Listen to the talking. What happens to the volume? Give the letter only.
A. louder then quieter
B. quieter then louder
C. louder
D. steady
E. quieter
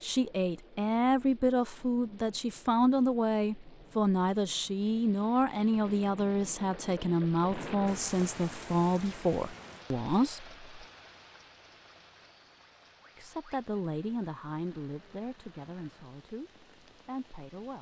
E.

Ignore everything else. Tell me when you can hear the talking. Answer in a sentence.
The talking can be heard from 0.0 to 10.8 s and from 13.2 to 17.7 s.